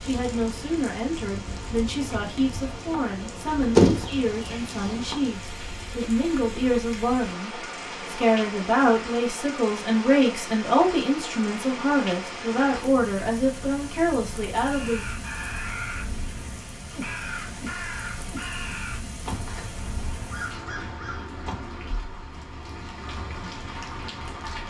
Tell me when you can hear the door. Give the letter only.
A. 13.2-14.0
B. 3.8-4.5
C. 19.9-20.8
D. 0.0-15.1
B.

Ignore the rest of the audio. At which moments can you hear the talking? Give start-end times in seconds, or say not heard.
0.0-15.1.